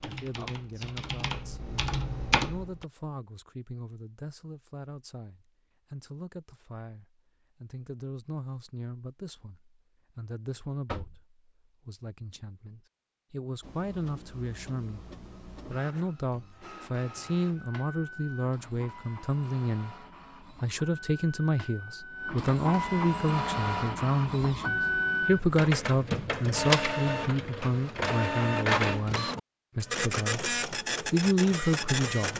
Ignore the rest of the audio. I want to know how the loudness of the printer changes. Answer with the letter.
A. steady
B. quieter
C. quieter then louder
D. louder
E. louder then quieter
D.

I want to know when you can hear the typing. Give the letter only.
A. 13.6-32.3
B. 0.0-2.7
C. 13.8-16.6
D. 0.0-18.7
B.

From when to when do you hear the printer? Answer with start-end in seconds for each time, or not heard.
13.6-32.3.